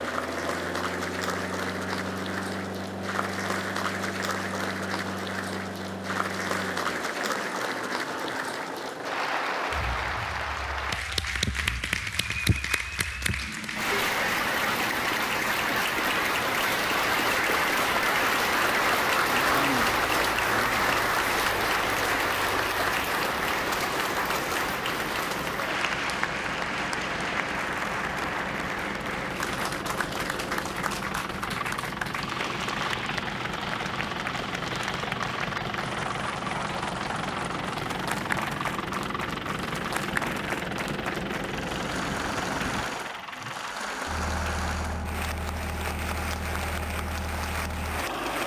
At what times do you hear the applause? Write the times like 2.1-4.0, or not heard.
0.0-48.4.